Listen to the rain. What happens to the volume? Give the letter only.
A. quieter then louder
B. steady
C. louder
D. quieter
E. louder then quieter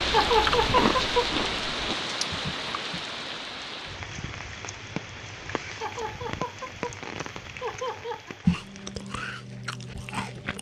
D.